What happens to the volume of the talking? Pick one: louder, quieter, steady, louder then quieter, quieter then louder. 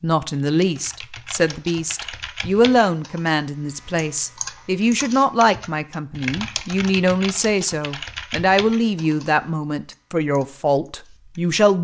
steady.